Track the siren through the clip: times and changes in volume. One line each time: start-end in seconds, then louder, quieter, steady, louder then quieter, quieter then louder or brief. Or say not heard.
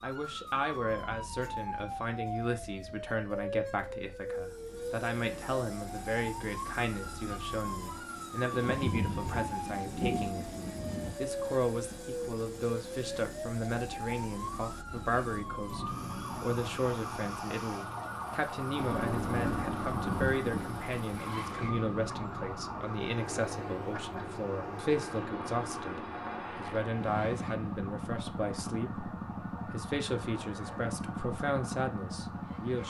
0.0-32.8 quieter.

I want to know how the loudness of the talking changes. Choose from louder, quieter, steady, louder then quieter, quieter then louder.
steady.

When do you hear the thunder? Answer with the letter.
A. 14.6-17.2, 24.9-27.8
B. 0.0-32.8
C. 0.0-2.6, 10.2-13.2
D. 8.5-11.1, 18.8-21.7
D.